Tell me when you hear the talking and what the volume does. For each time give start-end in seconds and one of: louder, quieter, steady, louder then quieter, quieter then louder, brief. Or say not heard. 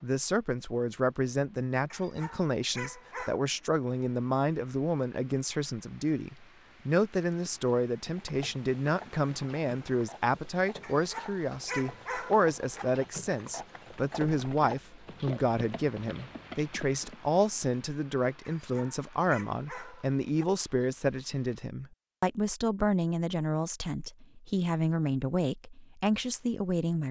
0.0-27.0 steady.